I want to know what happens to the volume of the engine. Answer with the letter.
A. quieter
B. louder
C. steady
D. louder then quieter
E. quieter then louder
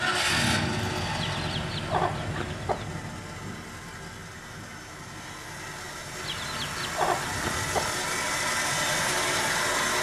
E.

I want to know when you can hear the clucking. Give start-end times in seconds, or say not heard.
1.2-2.9, 6.2-7.9.